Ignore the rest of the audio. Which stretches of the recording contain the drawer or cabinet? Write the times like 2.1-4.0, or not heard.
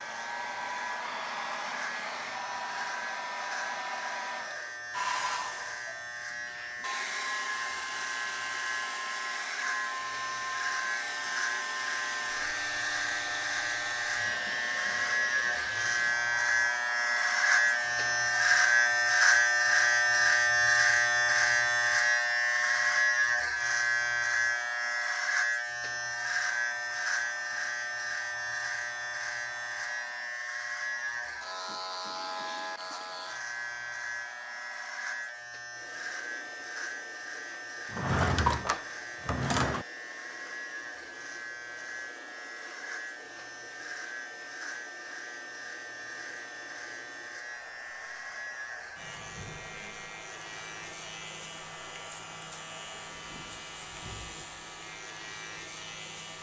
37.9-39.9.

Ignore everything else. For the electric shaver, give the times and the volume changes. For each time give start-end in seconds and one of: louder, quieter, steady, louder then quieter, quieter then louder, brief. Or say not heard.
0.0-56.3 louder then quieter.